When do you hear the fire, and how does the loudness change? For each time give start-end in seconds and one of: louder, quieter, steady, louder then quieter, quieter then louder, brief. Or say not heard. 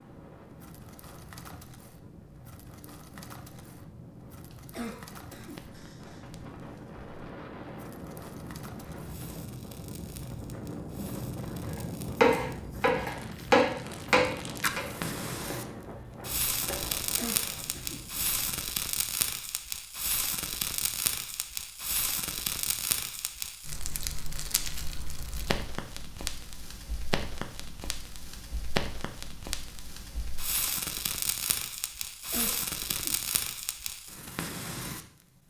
0.0-35.0 louder.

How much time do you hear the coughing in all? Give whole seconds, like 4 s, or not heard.
4 s.